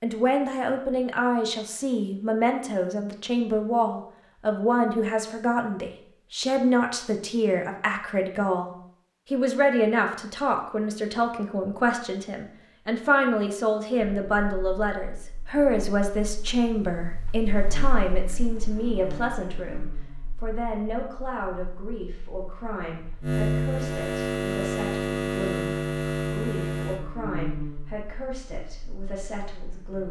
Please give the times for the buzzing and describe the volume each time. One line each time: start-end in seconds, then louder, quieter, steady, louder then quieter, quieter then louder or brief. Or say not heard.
13.9-30.0 louder then quieter.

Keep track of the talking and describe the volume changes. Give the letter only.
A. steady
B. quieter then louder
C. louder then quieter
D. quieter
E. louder
D.